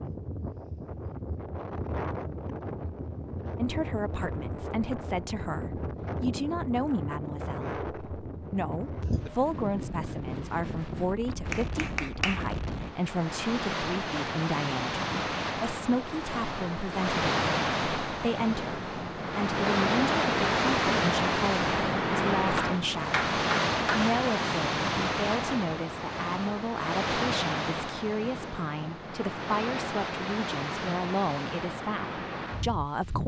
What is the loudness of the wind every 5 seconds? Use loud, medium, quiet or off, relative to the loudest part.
medium, medium, medium, loud, loud, medium, medium.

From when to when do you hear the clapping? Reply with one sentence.
You can hear the clapping from 11.5 to 12.4 s and from 22.6 to 24.1 s.